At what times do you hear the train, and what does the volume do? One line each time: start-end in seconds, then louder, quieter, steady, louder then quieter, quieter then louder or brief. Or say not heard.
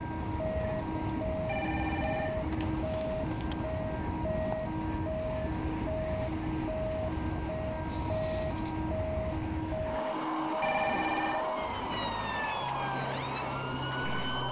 0.0-14.4 steady.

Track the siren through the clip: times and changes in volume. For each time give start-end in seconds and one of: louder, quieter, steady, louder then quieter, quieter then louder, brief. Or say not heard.
0.0-14.4 steady.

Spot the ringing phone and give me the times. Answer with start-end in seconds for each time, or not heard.
1.4-3.5, 10.6-11.5.